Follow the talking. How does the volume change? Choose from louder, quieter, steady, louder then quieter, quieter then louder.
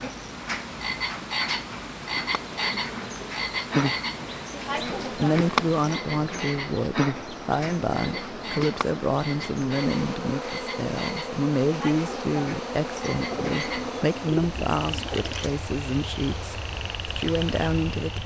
steady.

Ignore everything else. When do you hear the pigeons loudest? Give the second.
14 s.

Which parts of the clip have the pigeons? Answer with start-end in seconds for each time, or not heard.
13.3-15.5.